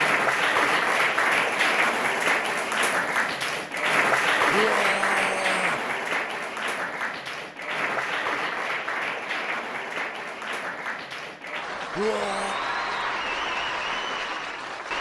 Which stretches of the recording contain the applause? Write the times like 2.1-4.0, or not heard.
0.0-14.9.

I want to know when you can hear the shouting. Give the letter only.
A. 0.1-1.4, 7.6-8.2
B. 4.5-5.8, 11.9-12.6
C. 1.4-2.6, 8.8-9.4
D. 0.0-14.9
B.